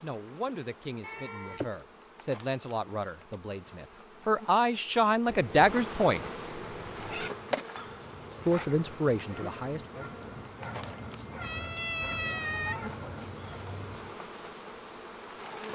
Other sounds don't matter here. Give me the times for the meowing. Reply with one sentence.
The meowing can be heard from 1.0 to 1.6 s, from 5.2 to 7.3 s and from 11.4 to 13.2 s.